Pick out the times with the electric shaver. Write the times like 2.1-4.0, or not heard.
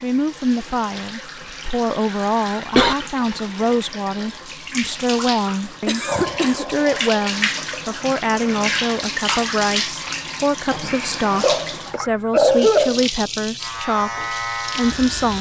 13.6-15.3.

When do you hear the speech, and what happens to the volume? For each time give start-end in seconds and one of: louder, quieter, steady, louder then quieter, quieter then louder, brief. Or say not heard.
0.0-15.3 steady.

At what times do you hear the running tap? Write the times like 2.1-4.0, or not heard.
0.0-15.3.